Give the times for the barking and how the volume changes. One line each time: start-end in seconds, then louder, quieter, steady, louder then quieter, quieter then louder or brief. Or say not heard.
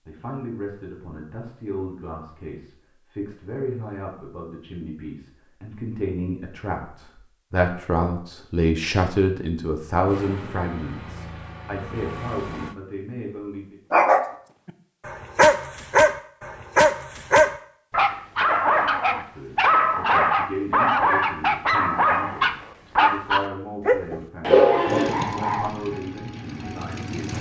13.9-25.7 steady.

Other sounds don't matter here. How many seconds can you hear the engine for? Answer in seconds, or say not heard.
5 s.